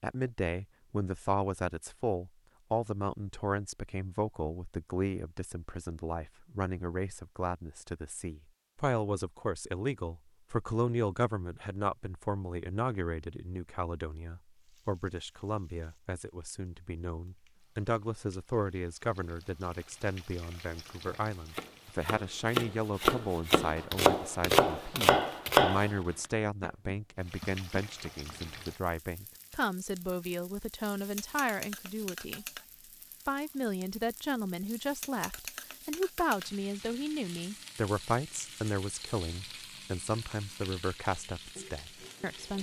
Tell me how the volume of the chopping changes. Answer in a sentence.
The loudness of the chopping goes up, then down.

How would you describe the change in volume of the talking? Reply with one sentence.
The loudness of the talking stays about the same.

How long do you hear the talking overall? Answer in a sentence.
You can hear the talking for 42 seconds altogether.